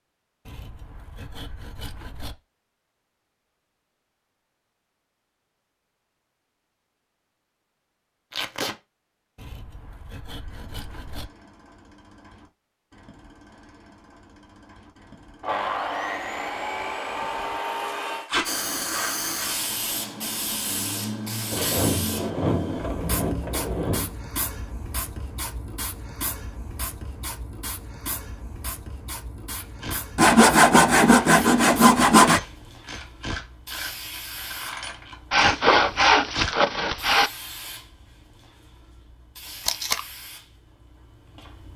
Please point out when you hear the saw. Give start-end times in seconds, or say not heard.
0.5-2.4, 9.3-11.2, 15.4-18.3, 21.5-24.1, 30.1-32.4, 35.3-37.3.